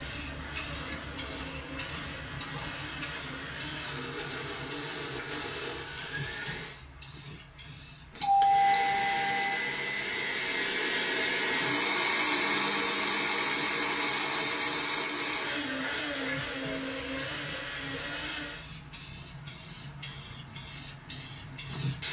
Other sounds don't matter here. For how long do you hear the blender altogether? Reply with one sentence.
The blender can be heard for 17 seconds in total.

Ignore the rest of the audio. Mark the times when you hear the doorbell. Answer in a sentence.
The doorbell can be heard from 8.2 to 9.6 s.